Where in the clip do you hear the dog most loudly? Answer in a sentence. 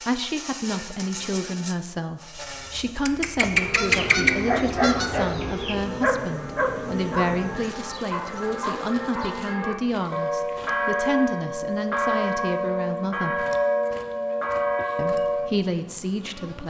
The volume of the dog peaks at 4 seconds.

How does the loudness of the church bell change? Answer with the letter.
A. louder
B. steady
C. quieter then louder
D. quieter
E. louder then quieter
A.